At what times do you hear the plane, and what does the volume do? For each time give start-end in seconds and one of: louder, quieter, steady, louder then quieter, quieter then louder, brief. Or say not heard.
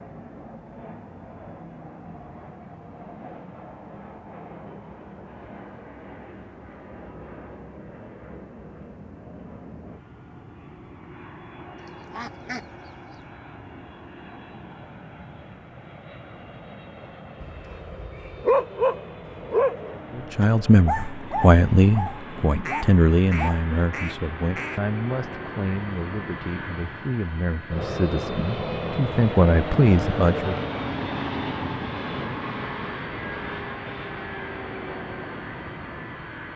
0.0-36.5 louder.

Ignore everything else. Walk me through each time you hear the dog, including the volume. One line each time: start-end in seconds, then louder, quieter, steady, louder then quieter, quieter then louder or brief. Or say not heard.
17.4-23.6 quieter.